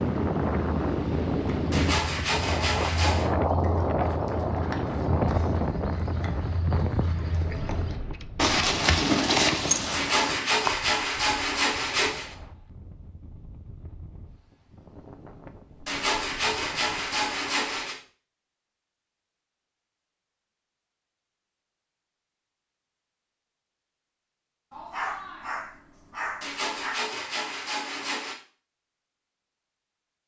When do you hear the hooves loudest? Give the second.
9 s.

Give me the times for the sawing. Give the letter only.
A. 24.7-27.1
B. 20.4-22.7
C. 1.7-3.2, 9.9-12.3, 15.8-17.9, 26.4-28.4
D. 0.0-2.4
C.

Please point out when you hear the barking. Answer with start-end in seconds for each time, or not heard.
24.7-27.1.